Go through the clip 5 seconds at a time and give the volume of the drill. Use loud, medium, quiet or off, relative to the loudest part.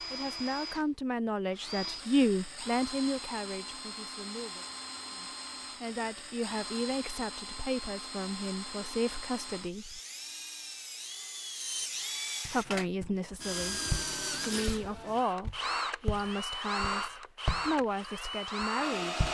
medium, medium, loud, loud.